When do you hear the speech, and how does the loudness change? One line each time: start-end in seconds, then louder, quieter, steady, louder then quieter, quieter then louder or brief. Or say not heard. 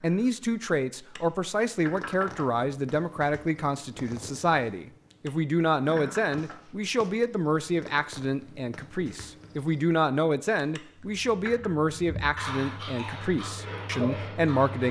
0.0-14.8 steady.